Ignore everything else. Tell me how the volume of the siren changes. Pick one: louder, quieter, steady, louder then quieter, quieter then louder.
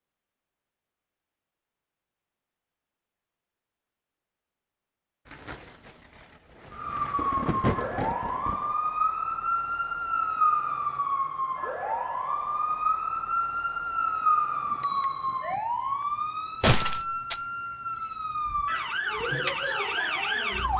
steady.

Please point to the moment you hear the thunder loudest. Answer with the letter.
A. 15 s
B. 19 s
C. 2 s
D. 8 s
D.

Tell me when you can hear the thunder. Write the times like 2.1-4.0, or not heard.
5.2-8.8.